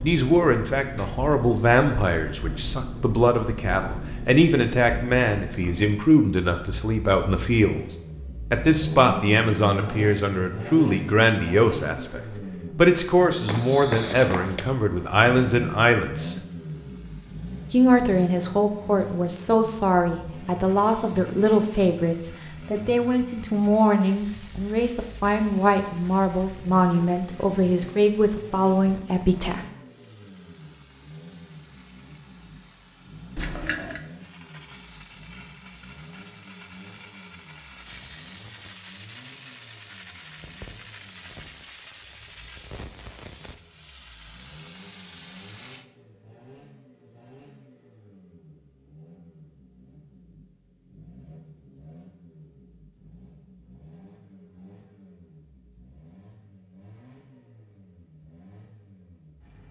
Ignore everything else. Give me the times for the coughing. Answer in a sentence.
You can hear the coughing from 13.4 to 14.6 s and from 33.4 to 34.0 s.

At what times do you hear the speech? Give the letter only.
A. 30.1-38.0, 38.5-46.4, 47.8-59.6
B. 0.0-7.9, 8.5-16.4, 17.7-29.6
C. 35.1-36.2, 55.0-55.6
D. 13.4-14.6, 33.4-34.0
B.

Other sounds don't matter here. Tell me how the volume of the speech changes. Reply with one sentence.
The volume of the speech stays about the same.